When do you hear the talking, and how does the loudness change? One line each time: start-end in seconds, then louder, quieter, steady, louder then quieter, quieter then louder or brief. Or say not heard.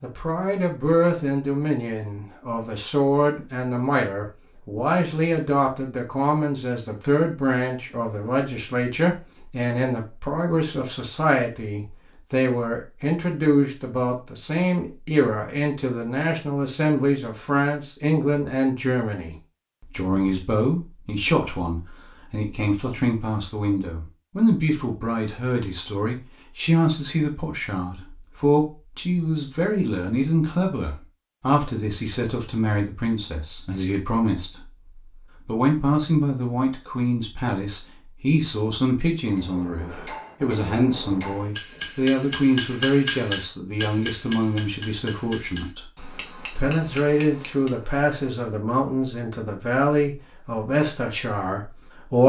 0.0-34.6 steady
35.5-52.2 steady.